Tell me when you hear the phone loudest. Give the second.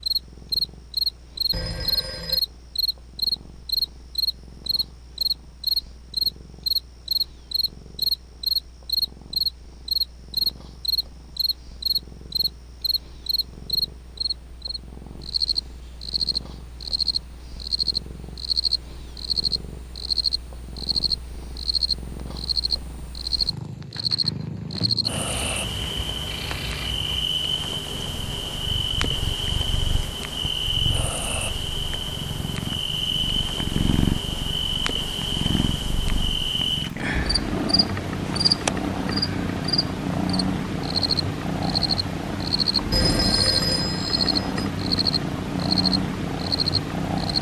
43 s.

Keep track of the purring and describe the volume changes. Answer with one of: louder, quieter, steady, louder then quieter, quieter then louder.
louder.